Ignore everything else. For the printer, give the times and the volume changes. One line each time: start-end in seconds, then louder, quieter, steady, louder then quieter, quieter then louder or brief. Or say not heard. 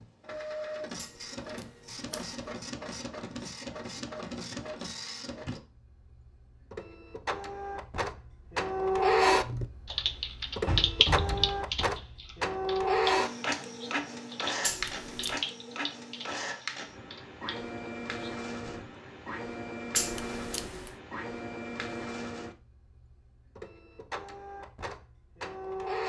0.0-26.0 louder then quieter.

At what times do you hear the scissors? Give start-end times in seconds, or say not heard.
0.9-2.2, 14.6-15.4, 19.9-20.9.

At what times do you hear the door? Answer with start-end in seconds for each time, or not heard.
10.7-11.9.